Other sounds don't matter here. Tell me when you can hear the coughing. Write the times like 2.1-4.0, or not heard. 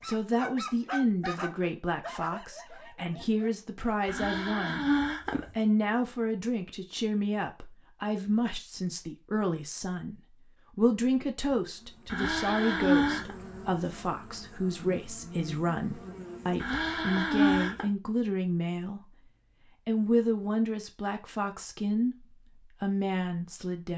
4.0-5.5, 12.1-13.3, 16.6-17.9.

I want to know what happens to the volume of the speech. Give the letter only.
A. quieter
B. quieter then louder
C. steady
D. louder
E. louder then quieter
C.